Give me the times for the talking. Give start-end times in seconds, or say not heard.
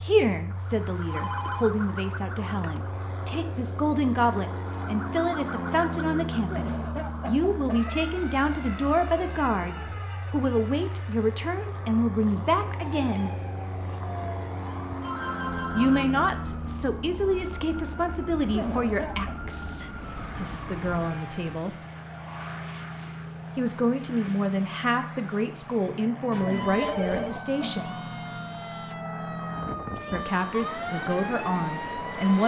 0.0-13.3, 15.8-21.8, 23.6-27.9, 30.1-32.4.